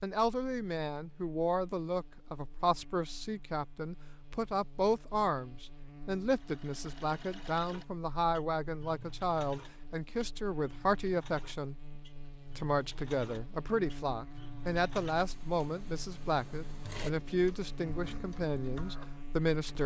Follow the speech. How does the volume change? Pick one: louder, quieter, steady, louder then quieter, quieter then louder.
steady.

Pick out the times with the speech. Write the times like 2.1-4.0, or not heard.
0.0-11.8, 12.6-19.8.